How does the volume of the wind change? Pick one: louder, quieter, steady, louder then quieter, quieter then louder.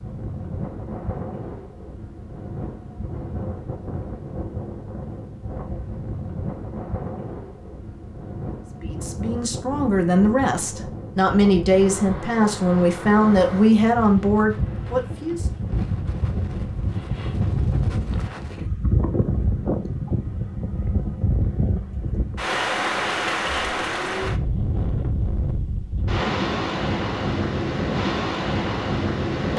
louder.